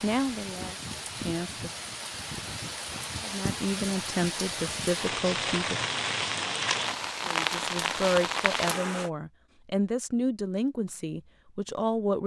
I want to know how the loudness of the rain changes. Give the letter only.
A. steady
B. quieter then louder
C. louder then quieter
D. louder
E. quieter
D.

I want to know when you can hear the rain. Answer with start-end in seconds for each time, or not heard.
0.0-9.1.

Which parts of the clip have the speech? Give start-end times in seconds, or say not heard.
0.0-1.7, 3.2-5.8, 7.2-12.2.